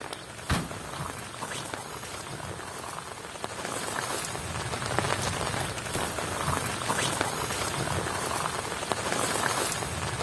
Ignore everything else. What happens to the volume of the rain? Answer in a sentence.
The volume of the rain goes up.